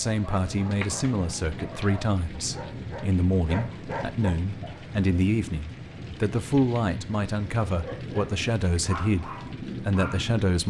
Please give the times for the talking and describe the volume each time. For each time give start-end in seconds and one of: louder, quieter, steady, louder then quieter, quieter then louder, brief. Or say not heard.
0.0-10.6 steady.